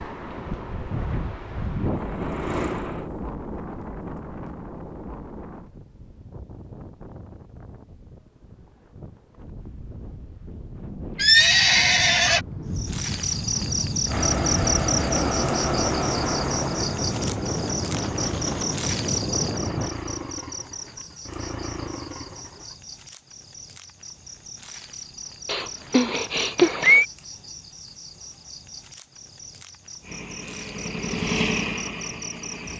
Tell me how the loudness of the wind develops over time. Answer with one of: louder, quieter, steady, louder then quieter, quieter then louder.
quieter then louder.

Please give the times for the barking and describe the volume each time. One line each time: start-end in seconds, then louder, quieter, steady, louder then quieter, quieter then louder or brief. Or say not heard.
not heard.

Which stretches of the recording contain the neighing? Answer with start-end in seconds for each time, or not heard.
11.2-12.4, 25.4-27.1.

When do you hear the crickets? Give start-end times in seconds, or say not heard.
12.8-32.7.